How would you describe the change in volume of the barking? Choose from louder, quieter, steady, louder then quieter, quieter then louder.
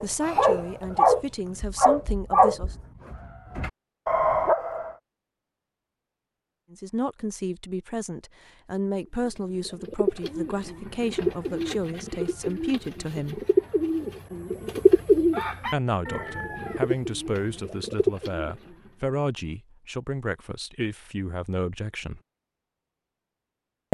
quieter then louder.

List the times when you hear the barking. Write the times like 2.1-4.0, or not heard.
0.0-5.0.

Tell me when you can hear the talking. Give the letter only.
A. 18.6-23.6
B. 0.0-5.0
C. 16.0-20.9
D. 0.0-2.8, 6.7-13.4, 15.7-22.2
D.